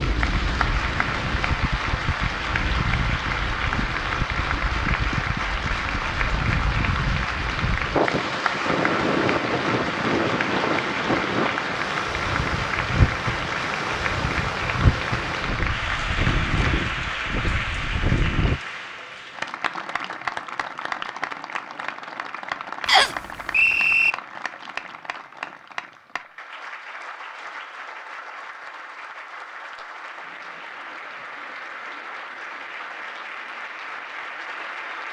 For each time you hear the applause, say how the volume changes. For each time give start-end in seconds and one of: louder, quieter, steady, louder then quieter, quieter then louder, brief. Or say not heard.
0.0-35.0 quieter.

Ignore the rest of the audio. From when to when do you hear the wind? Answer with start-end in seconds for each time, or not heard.
0.0-18.6.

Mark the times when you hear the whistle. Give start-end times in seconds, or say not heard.
22.9-24.1.